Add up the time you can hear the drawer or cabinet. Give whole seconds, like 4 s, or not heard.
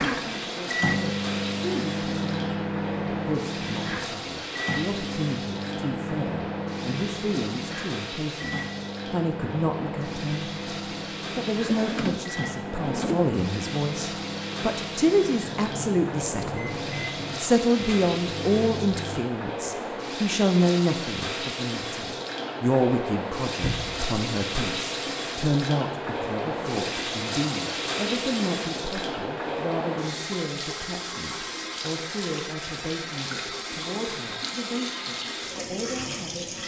2 s.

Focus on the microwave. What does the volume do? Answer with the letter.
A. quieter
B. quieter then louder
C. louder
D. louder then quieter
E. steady
A.